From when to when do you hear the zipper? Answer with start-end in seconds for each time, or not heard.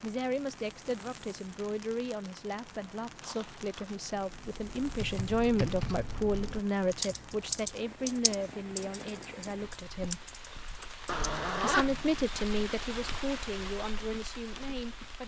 3.2-4.0, 11.1-12.2.